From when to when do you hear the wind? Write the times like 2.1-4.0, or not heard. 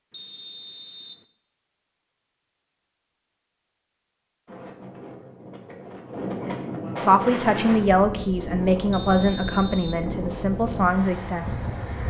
4.5-12.0.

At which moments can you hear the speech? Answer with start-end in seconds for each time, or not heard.
7.0-11.4.